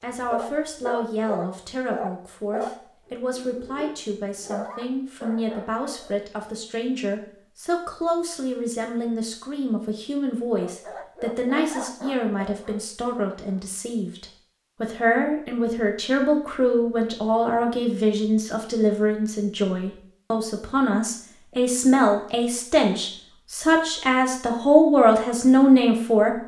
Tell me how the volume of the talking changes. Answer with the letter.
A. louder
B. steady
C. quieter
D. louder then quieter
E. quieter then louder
A.